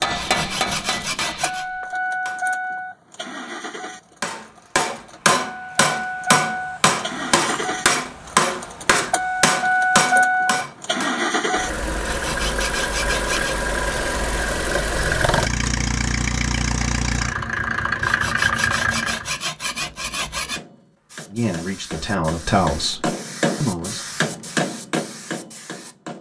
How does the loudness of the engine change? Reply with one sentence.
The loudness of the engine goes up.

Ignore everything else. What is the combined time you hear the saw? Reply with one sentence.
You can hear the saw for 6 seconds altogether.